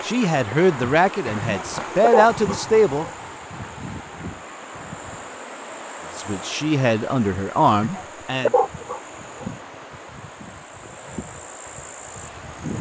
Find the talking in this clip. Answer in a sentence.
The talking can be heard from 0.0 to 3.0 s and from 6.2 to 8.5 s.